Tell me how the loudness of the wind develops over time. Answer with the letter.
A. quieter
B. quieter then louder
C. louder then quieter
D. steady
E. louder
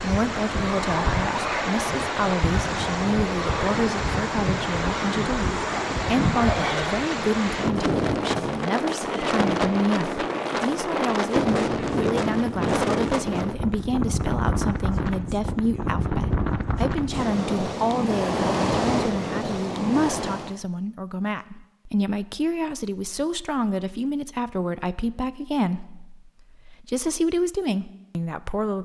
D.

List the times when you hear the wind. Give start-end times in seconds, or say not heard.
0.0-20.6.